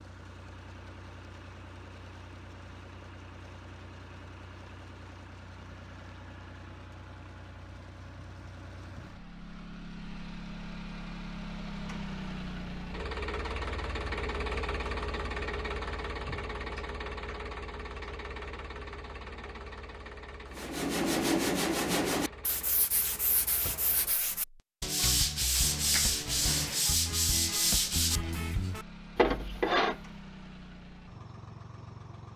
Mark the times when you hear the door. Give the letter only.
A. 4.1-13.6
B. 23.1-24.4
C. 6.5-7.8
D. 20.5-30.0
B.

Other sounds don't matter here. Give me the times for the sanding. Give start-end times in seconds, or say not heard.
20.5-30.0.